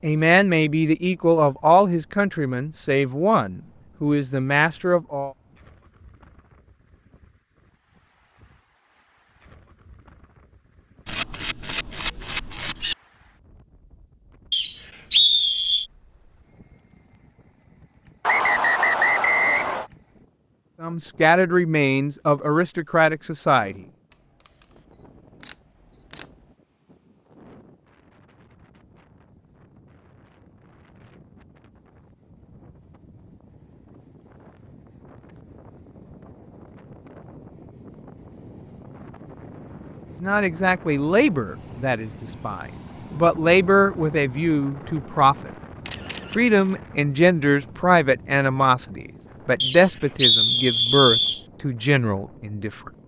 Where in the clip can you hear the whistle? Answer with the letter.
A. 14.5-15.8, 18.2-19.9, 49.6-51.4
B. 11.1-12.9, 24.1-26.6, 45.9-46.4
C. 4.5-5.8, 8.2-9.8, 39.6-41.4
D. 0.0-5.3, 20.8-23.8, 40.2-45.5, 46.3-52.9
A.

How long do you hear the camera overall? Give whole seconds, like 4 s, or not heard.
5 s.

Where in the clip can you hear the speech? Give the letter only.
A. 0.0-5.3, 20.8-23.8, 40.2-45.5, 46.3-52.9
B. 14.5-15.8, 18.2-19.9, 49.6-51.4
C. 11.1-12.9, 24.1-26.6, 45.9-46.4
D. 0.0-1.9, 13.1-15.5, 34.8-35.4
A.